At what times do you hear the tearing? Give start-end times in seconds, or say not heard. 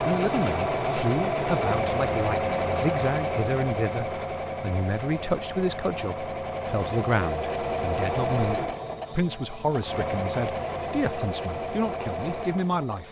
not heard.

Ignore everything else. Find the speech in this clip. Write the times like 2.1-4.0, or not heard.
0.0-13.0.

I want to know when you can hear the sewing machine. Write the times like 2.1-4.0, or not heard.
0.0-13.0.